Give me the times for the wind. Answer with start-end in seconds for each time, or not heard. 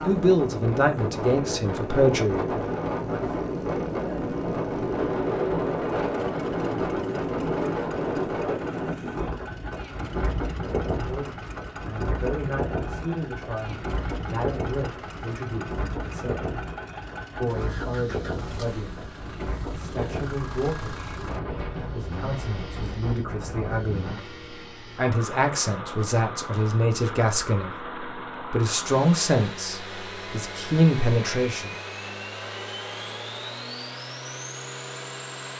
0.0-24.1.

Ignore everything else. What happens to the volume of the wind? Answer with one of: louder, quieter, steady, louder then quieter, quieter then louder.
quieter.